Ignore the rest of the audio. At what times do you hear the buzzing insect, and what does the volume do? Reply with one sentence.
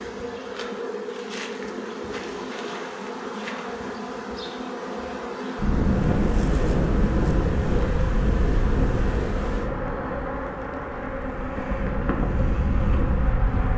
The buzzing insect can be heard from 0.0 to 13.7 s, at a steady volume.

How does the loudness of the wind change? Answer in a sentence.
The loudness of the wind goes down, then up.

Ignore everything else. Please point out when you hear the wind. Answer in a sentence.
You can hear the wind from 5.5 to 13.7 s.